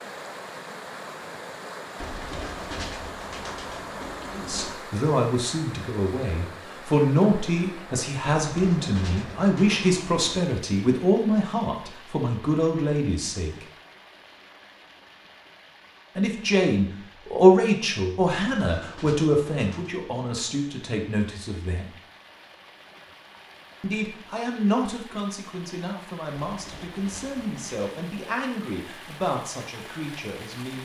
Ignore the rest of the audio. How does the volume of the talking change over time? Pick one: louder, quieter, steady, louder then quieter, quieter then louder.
quieter.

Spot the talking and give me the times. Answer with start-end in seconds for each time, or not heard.
4.3-13.7, 16.1-21.9, 23.8-30.7.